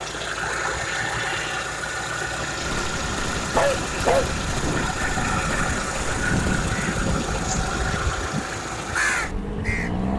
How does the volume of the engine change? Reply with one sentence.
The volume of the engine stays about the same.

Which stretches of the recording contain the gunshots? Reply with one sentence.
The gunshots can be heard from 2.6 to 6.7 s.